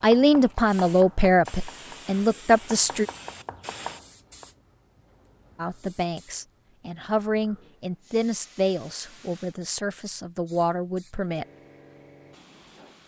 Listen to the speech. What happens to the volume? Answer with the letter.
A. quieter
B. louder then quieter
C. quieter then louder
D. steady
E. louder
A.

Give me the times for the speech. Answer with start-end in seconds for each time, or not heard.
0.0-3.0, 5.5-11.4.